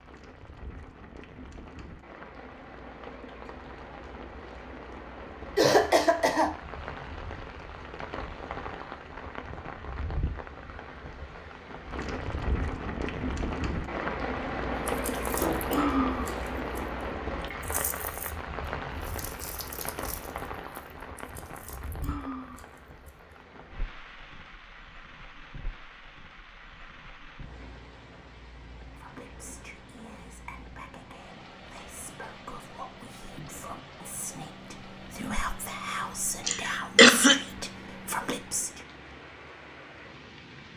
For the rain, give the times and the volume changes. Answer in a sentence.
You can hear the rain from 0.0 to 40.7 s, getting louder then quieter.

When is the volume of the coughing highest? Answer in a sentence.
The volume of the coughing peaks at 37 seconds.